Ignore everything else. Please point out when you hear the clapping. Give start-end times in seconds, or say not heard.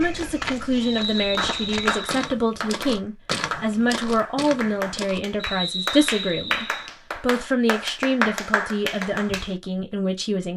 1.4-9.5.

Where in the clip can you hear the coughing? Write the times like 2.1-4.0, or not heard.
not heard.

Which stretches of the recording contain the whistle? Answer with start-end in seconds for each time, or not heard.
0.8-2.3, 5.3-6.9.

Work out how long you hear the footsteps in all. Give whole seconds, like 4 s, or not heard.
5 s.